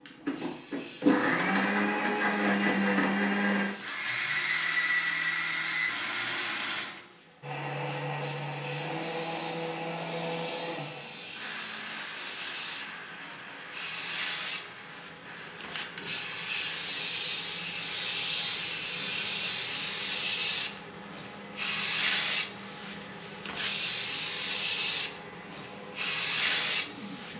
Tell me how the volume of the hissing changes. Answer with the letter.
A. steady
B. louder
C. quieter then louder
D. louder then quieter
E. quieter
B.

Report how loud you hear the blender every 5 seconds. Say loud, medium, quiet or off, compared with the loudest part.
loud, medium, quiet, quiet, quiet, quiet.